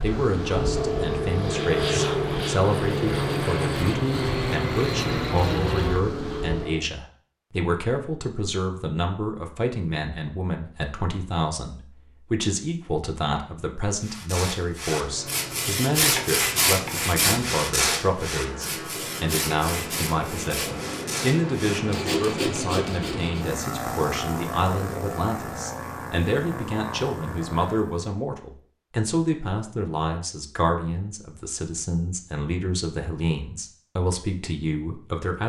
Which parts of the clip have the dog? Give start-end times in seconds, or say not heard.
not heard.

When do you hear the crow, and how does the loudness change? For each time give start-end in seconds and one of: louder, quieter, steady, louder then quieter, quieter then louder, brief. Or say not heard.
not heard.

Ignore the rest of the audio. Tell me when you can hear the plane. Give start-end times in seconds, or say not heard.
0.0-6.9, 14.9-28.1.